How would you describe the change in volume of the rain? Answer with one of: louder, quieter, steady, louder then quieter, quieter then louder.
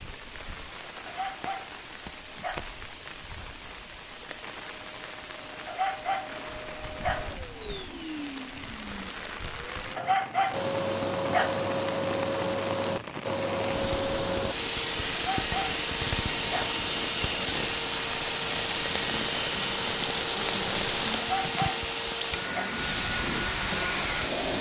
louder.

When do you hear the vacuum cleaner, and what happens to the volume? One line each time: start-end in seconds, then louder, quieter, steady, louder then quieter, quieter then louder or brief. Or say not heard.
0.0-24.5 louder.